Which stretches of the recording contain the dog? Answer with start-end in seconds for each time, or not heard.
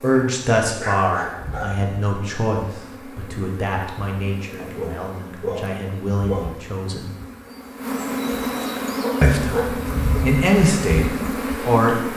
0.1-1.8, 4.5-6.5, 9.0-10.2.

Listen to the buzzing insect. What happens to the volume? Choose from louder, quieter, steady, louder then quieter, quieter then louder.
louder.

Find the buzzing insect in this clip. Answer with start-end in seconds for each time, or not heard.
0.0-12.1.